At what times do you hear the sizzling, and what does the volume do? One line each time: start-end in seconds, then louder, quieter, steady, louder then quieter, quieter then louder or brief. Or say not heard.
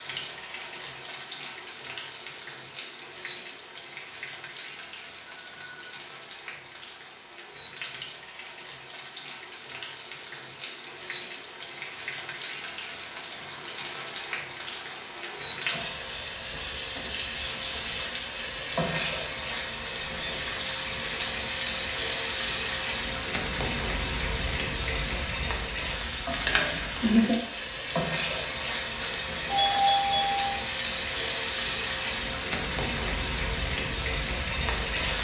0.0-35.1 louder.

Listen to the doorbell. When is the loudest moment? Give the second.
30 s.